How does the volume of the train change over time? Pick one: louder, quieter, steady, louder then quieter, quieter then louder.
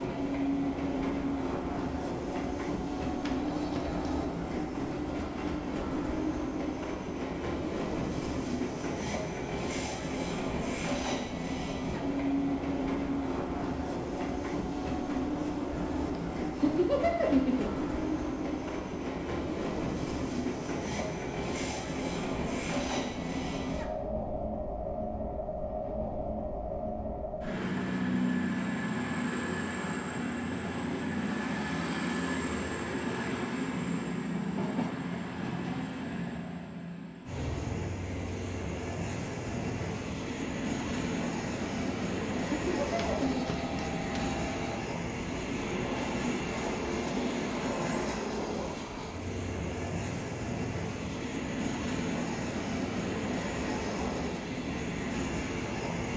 steady.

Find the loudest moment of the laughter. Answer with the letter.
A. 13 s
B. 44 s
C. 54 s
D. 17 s
D.